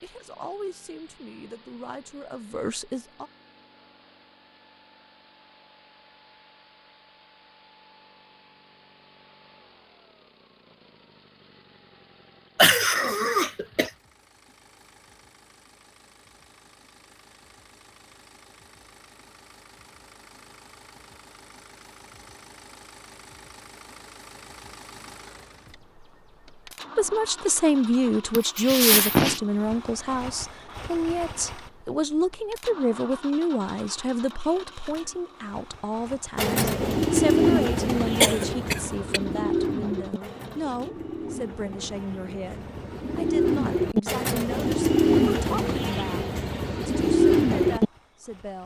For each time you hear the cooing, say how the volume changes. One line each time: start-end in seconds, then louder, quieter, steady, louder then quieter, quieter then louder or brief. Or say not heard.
36.4-47.9 quieter then louder.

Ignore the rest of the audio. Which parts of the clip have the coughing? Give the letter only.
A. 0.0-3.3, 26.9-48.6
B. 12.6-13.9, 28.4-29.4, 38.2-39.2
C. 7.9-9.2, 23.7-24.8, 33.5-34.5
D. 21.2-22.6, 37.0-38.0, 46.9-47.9
B.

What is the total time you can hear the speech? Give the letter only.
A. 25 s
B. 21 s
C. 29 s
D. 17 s
A.